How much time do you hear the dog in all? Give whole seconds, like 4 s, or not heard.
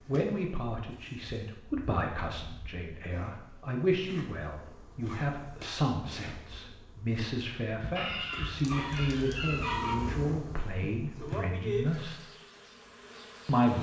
2 s.